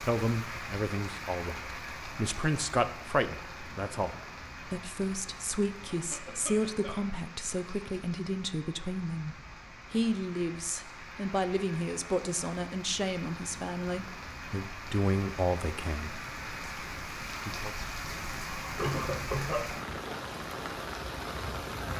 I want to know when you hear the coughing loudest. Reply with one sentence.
The volume of the coughing peaks at 19 seconds.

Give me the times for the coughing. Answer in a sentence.
You can hear the coughing from 5.9 to 7.2 s and from 18.8 to 20.1 s.